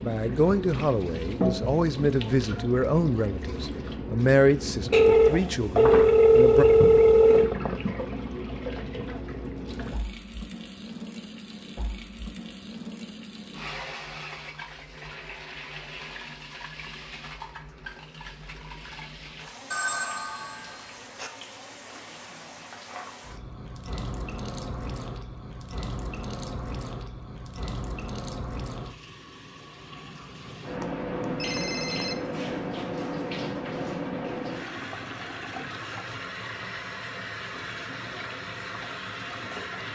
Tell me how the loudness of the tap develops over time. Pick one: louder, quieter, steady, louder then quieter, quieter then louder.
quieter then louder.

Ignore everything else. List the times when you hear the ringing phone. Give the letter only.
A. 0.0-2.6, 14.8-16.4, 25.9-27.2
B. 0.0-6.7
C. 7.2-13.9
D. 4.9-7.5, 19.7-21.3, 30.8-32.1
D.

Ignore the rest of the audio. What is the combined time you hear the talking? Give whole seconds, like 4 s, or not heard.
7 s.